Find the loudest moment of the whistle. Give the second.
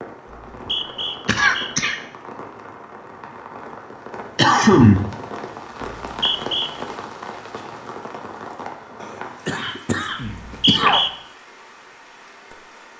11 s.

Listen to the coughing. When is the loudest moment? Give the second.
5 s.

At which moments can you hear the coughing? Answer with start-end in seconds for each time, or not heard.
1.2-1.9, 4.3-5.2, 9.0-11.0.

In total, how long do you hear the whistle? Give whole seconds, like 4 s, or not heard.
3 s.